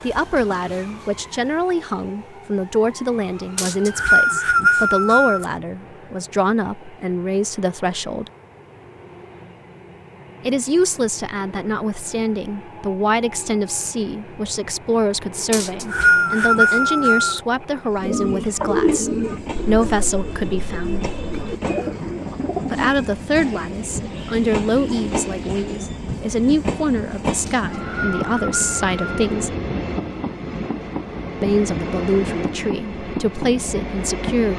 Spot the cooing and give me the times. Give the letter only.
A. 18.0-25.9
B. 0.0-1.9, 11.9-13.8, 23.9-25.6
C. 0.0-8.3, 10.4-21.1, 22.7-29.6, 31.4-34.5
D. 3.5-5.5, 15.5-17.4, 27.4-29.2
A.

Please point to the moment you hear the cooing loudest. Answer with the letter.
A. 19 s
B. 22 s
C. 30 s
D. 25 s
A.